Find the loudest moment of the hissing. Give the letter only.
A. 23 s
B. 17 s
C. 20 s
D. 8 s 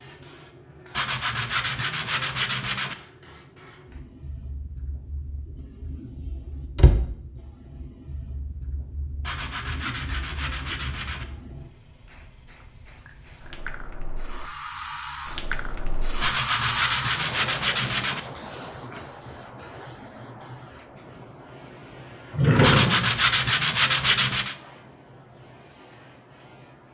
B.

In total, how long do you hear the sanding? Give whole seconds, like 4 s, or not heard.
8 s.